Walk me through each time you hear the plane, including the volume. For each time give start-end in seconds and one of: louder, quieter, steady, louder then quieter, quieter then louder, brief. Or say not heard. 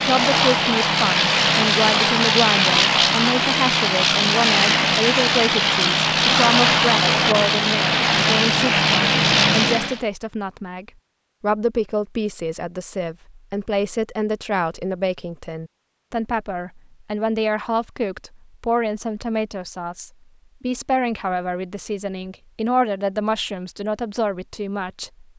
0.0-10.0 steady.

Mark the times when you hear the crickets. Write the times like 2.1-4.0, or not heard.
not heard.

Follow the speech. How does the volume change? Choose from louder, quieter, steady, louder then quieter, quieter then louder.
steady.